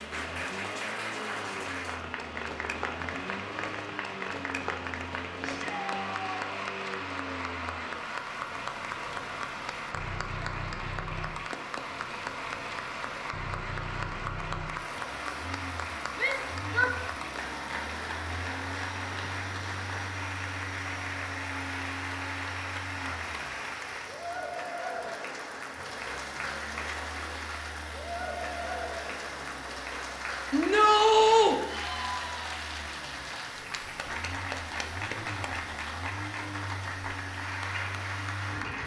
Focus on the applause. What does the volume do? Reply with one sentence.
The volume of the applause stays about the same.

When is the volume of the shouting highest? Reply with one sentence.
The loudest moment of the shouting is at 31 seconds.